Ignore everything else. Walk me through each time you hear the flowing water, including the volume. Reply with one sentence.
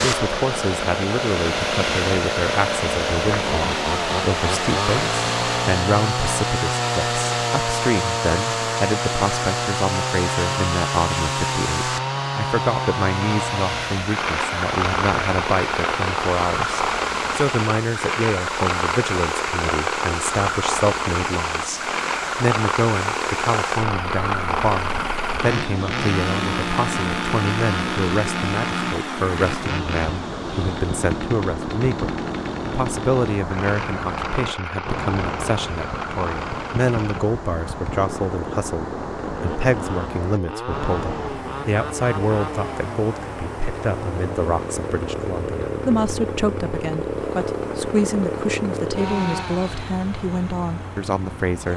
You can hear the flowing water from 0.0 to 51.7 s, getting quieter.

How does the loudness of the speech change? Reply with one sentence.
The volume of the speech stays about the same.